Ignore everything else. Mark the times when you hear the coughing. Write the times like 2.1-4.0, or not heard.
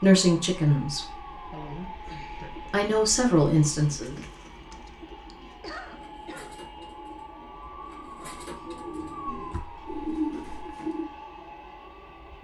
1.5-2.5, 4.7-6.6, 9.3-10.8.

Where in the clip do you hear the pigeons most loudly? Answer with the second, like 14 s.
10 s.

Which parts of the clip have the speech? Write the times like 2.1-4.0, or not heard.
0.0-1.1, 2.7-4.2.